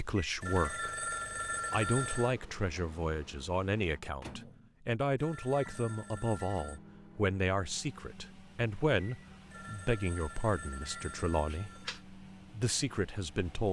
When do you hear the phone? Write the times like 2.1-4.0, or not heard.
0.4-2.4, 5.2-6.8, 9.5-12.0.